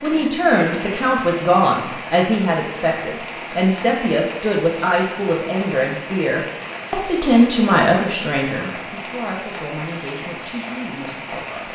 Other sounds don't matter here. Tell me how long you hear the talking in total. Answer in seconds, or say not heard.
12 s.